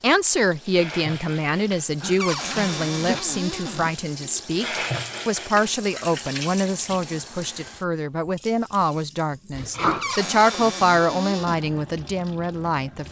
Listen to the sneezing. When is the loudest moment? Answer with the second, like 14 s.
10 s.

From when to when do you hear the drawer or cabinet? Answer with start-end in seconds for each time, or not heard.
2.2-4.0, 10.0-11.6.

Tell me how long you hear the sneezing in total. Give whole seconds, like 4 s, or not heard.
2 s.